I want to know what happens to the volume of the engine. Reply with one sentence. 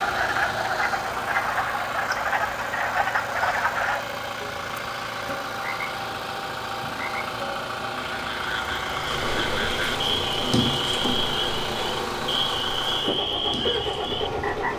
The volume of the engine stays about the same.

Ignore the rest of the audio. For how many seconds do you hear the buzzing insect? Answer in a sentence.
The buzzing insect can be heard for 6 seconds in total.